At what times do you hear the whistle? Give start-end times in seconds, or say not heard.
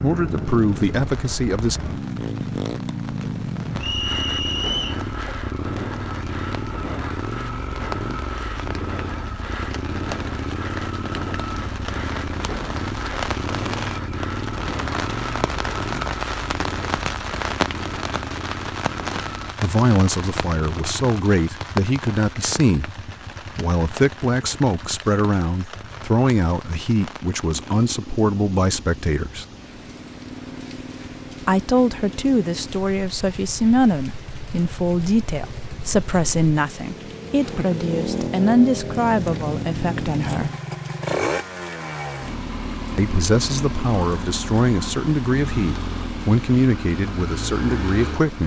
3.8-5.0.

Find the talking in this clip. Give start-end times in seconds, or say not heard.
0.0-1.8, 19.6-22.9, 23.6-29.4, 31.4-40.5, 43.0-48.4.